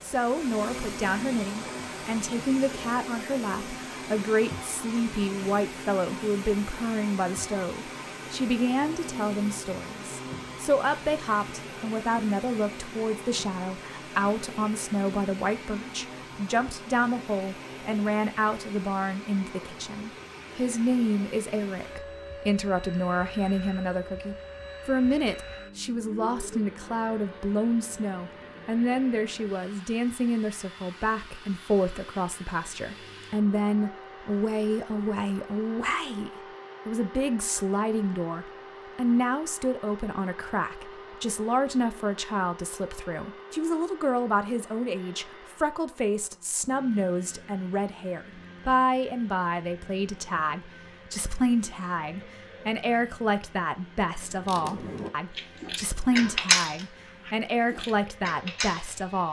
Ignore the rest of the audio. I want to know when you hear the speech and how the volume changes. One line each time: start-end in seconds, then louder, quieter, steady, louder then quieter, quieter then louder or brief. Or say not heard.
0.0-59.2 steady.